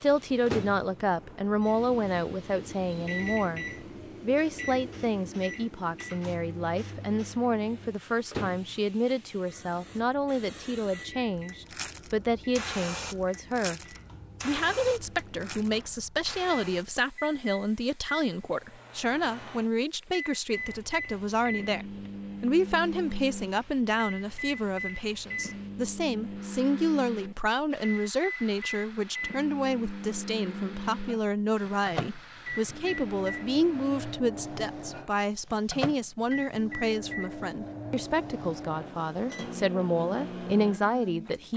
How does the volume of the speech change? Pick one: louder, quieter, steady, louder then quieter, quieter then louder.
steady.